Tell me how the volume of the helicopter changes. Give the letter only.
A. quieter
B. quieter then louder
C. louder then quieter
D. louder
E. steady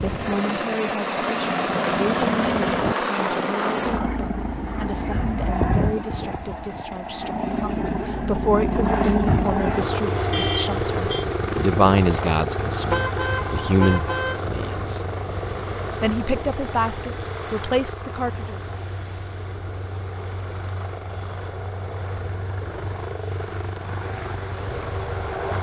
A.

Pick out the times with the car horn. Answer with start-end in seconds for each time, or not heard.
10.3-11.2, 12.8-14.4.